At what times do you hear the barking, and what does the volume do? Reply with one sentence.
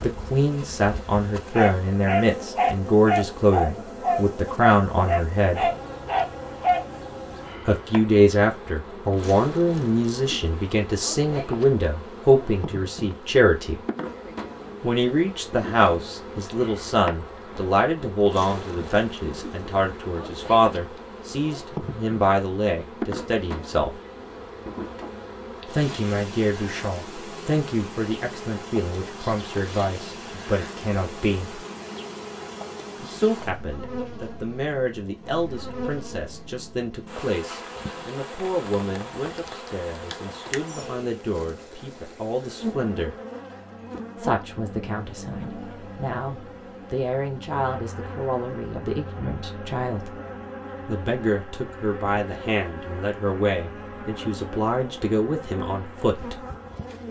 The barking can be heard from 1.5 to 6.8 s, at a steady volume.